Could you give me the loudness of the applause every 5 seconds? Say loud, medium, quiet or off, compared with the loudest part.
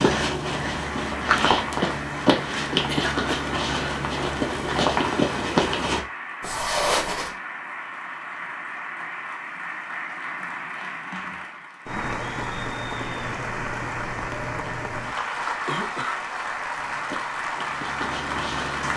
medium, medium, loud, loud.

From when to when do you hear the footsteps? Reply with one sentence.
The footsteps can be heard from 0.0 to 7.3 s and from 16.7 to 18.9 s.